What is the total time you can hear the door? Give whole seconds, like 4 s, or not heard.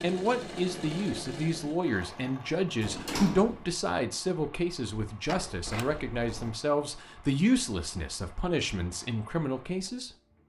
2 s.